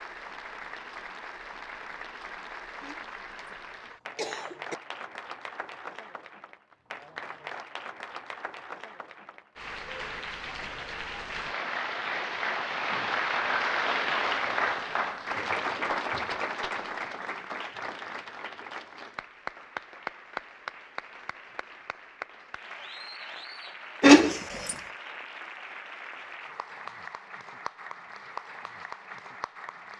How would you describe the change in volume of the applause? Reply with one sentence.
The loudness of the applause goes up, then down.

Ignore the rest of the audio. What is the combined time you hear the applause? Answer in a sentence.
You can hear the applause for 30 seconds altogether.